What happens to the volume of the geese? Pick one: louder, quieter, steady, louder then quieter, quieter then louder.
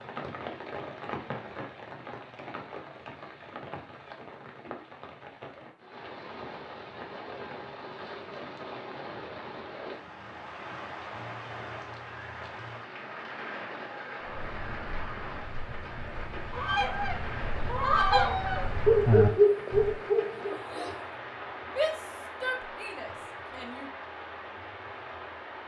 louder.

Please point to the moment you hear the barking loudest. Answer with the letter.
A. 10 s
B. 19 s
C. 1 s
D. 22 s
B.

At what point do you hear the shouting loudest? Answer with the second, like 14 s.
22 s.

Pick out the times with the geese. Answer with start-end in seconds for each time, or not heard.
14.2-20.0.